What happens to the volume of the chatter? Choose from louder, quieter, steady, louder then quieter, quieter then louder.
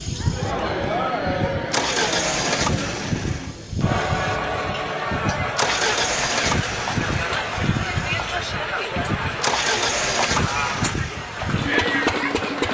steady.